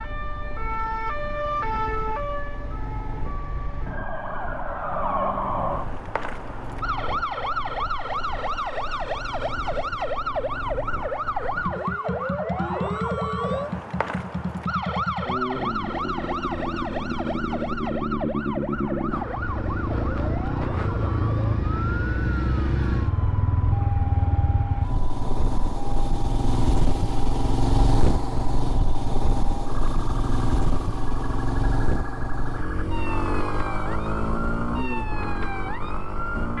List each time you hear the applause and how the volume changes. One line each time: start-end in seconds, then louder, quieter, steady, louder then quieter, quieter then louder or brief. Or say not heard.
not heard.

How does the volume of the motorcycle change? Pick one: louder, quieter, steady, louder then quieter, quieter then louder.
louder.